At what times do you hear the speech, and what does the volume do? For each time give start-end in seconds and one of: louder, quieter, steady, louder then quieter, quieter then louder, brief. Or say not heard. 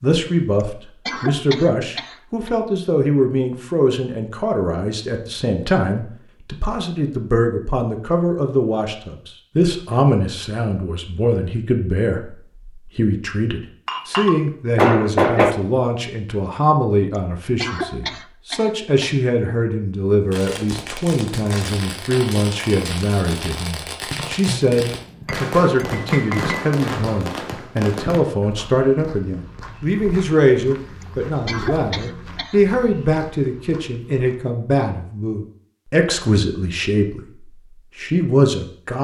0.0-38.9 steady.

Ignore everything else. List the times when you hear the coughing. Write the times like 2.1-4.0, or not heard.
0.6-2.5, 17.1-19.1, 31.0-32.6.